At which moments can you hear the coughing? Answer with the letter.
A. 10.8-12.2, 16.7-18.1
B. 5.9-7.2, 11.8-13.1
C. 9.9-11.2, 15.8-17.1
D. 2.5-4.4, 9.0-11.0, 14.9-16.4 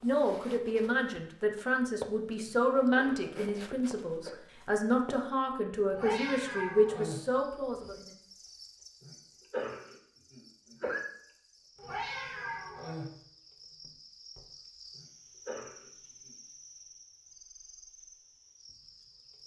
D.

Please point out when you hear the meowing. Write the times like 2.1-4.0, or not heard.
5.9-7.2, 11.8-13.1.